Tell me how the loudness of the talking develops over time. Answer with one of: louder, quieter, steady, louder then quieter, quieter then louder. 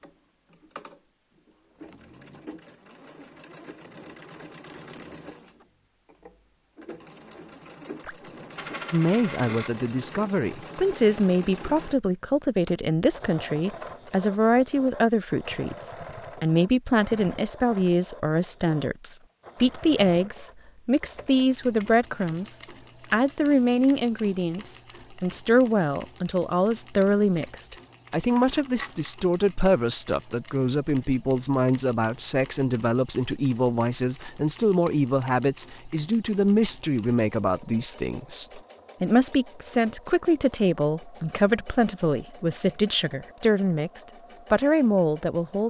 steady.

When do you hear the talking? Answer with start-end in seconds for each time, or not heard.
8.9-45.6.